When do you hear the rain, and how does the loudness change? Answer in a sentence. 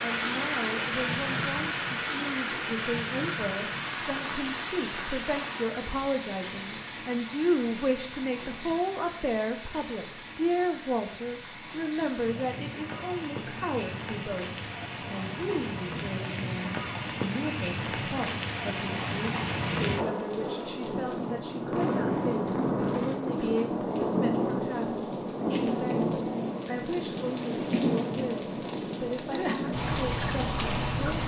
You can hear the rain from 0.0 to 31.2 s, getting quieter then louder.